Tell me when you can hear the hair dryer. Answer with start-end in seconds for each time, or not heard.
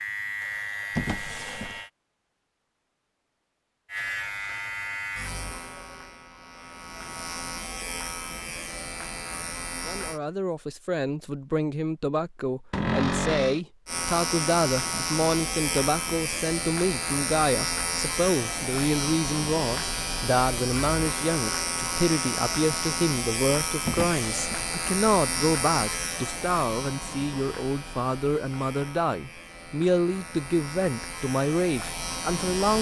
not heard.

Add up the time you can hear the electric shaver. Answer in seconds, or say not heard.
27 s.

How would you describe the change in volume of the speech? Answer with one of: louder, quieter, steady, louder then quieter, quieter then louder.
steady.